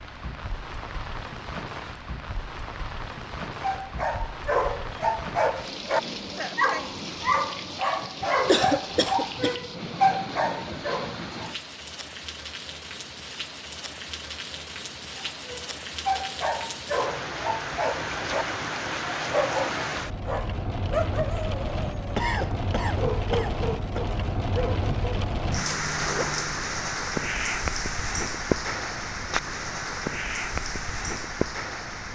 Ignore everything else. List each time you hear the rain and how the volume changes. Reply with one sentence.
The rain can be heard from 0.0 to 32.1 s, getting louder.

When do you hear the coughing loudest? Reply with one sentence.
The volume of the coughing peaks at 9 seconds.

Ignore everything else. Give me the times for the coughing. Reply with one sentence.
You can hear the coughing from 8.2 to 9.6 s and from 22.1 to 24.0 s.